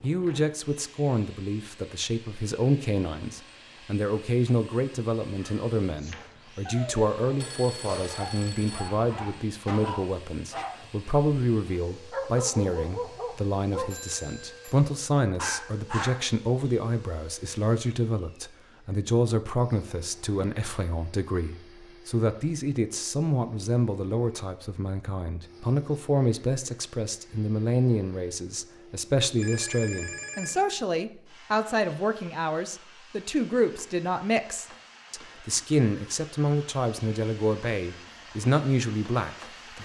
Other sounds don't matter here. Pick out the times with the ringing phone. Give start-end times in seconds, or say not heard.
7.3-8.9, 13.9-14.8, 29.4-30.6.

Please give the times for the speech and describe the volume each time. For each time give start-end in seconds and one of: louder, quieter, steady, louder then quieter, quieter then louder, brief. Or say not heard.
0.0-39.8 steady.